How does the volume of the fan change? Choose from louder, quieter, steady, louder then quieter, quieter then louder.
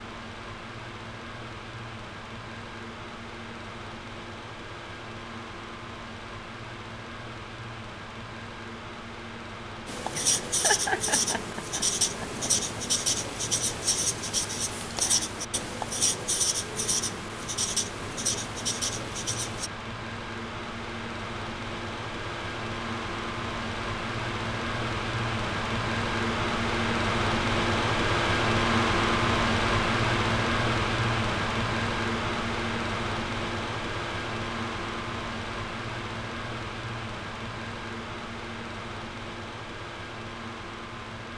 louder then quieter.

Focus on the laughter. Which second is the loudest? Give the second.
11 s.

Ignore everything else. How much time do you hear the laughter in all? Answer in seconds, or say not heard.
2 s.